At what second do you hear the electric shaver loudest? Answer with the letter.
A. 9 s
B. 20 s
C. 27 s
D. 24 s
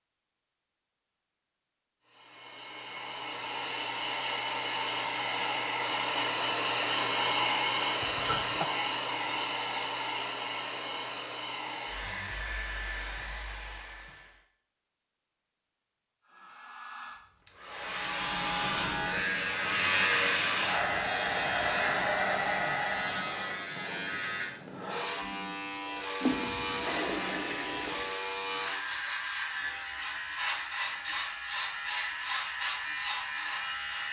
B.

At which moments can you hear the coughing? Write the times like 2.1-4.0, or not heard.
8.0-8.7.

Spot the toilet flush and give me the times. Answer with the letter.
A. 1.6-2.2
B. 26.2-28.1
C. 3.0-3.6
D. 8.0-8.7
B.